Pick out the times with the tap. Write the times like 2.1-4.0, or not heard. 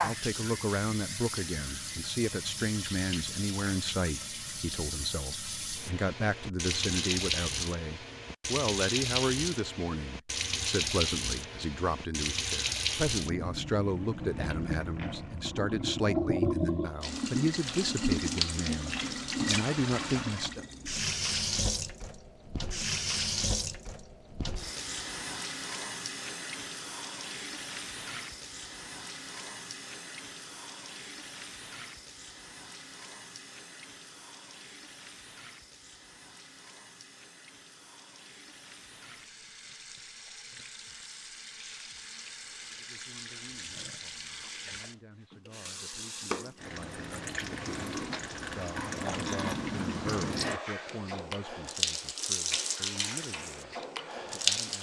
0.0-54.7.